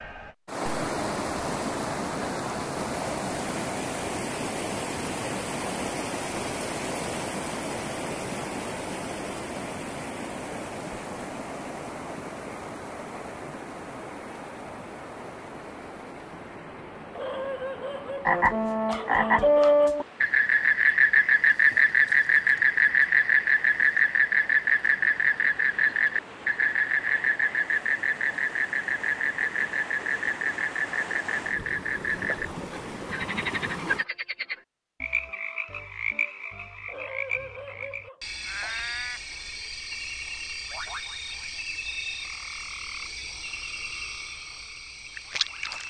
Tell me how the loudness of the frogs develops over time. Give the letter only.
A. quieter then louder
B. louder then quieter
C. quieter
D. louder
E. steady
C.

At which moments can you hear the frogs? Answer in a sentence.
The frogs can be heard from 18.2 to 45.8 s.